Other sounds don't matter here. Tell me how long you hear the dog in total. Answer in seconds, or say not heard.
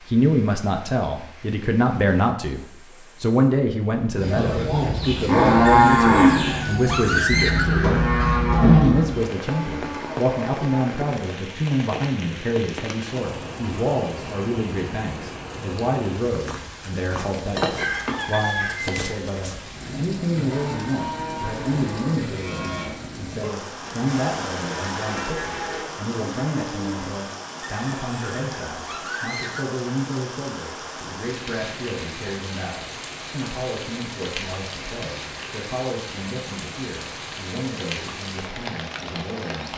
not heard.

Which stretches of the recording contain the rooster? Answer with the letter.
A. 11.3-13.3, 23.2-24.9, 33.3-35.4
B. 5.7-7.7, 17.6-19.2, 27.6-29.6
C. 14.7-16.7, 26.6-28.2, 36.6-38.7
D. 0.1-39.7
B.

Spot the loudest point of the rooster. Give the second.
7 s.